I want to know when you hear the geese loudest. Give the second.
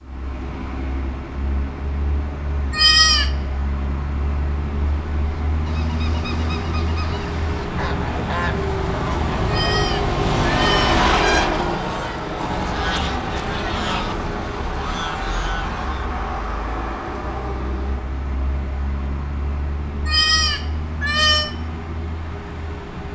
11 s.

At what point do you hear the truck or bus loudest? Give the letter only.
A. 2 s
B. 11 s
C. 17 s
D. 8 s
B.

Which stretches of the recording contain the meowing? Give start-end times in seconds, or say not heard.
2.7-3.3, 9.4-11.0, 20.1-21.6.